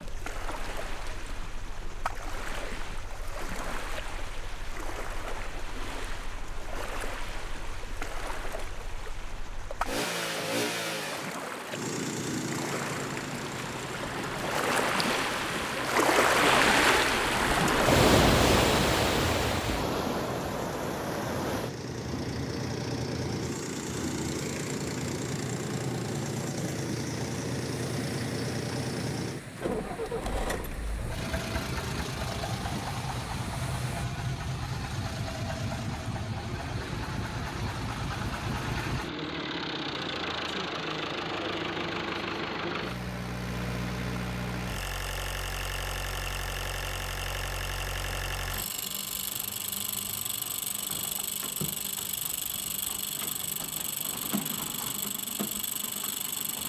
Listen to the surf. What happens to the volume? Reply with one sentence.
The volume of the surf goes up, then down.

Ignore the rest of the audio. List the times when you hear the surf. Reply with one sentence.
The surf can be heard from 0.0 to 34.0 s.